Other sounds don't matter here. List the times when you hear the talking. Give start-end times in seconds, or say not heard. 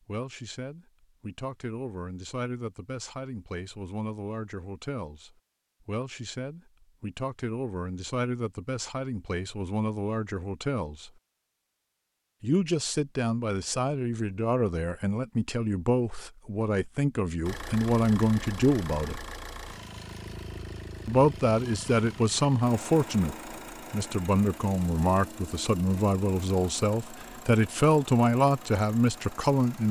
0.1-11.1, 12.4-19.2, 21.1-29.8.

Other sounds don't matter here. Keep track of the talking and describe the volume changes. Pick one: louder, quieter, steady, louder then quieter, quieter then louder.
louder.